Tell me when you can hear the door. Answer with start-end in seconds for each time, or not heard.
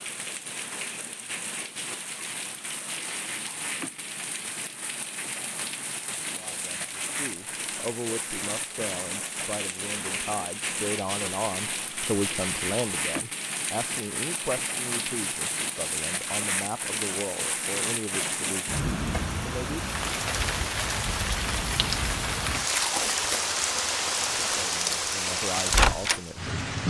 not heard.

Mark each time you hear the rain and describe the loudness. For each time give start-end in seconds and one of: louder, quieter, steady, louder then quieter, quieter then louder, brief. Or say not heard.
0.0-26.8 louder.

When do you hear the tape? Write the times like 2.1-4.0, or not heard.
22.6-23.4.